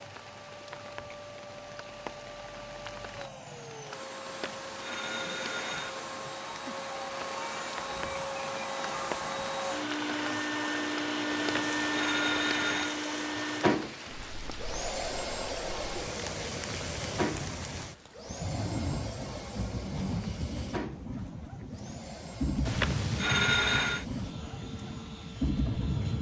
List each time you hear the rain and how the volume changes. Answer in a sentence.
The rain can be heard from 0.0 to 26.1 s, getting louder.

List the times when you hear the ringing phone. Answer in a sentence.
You can hear the ringing phone from 4.2 to 6.0 s, from 11.3 to 13.0 s and from 22.6 to 24.1 s.